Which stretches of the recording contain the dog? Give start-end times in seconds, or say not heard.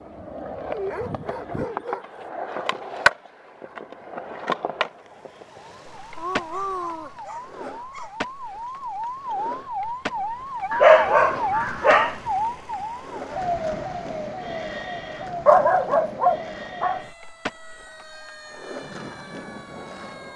0.7-2.3, 6.2-8.1, 10.7-12.2, 15.4-17.0.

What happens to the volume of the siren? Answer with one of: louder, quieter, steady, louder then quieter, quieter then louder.
louder then quieter.